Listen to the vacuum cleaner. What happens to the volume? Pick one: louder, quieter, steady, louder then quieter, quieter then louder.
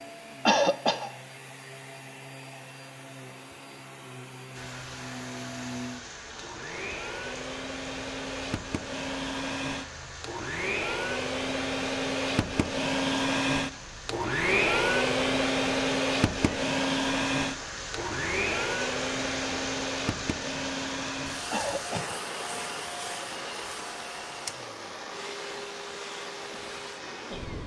louder then quieter.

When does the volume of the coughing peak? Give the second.
1 s.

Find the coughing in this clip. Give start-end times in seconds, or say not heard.
0.5-1.1, 21.5-22.1.